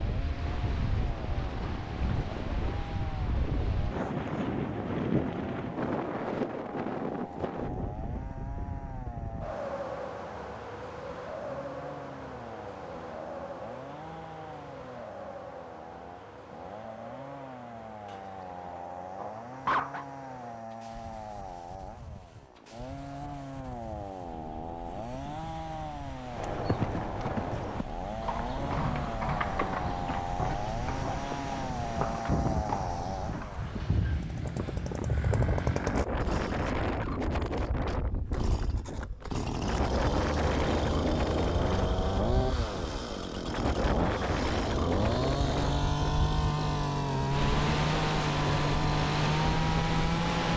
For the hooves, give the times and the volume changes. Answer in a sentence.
The hooves can be heard from 26.4 to 35.6 s, getting quieter.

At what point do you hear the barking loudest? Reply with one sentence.
The volume of the barking peaks at 20 seconds.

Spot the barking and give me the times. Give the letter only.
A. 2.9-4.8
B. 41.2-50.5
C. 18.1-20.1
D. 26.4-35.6
C.